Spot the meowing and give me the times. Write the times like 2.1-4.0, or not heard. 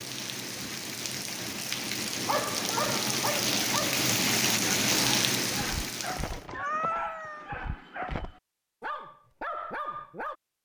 6.3-7.5.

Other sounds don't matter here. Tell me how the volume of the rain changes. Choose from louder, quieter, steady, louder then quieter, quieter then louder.
louder.